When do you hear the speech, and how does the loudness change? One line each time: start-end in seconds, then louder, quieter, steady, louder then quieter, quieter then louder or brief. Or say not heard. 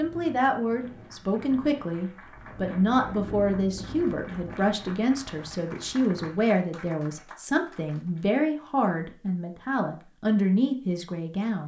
0.0-11.6 steady.